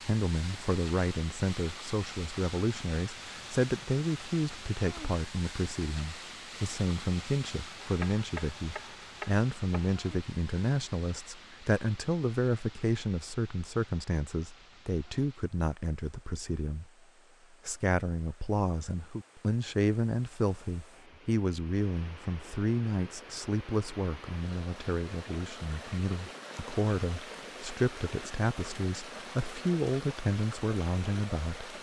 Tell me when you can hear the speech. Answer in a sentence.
The speech can be heard from 0.1 to 16.9 s and from 17.6 to 31.7 s.